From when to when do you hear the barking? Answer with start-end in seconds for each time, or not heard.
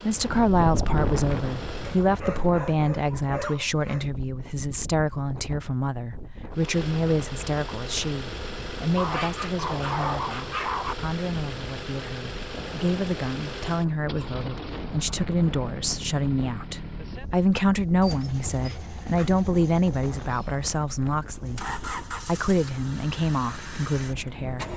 1.8-4.0, 8.9-10.9, 18.0-19.4.